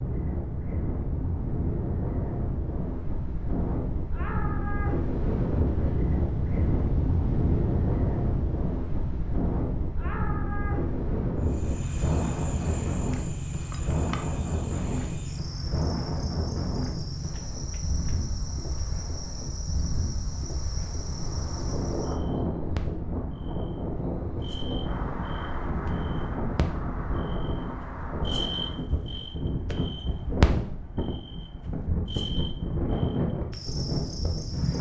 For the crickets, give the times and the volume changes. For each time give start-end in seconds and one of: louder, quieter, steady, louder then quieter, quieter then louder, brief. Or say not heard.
11.4-34.7 louder.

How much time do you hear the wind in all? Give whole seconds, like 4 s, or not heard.
35 s.